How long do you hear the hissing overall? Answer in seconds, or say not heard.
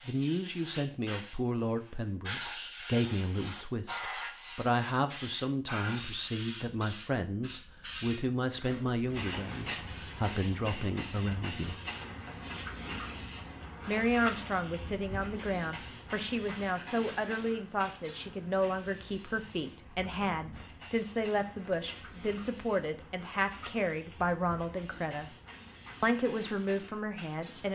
28 s.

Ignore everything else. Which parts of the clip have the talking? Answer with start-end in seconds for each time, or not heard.
0.1-11.8, 13.8-25.3, 26.0-27.7.